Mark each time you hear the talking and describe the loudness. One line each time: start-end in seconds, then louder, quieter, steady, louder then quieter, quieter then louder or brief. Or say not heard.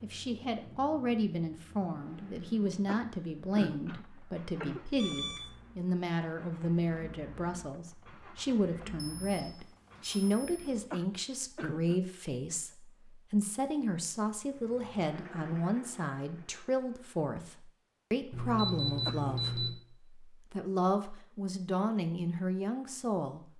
0.0-23.5 steady.